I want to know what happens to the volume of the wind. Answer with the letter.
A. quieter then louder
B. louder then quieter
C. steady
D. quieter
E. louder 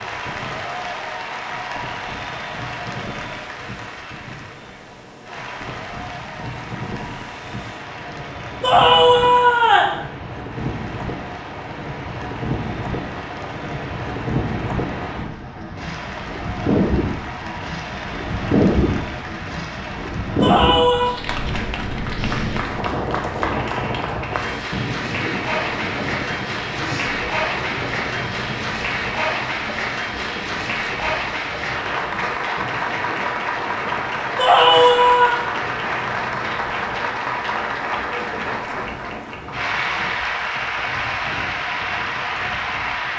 B.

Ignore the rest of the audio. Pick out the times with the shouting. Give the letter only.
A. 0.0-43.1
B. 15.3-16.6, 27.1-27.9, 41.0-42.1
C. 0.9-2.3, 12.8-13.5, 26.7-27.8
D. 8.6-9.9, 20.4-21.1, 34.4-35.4
D.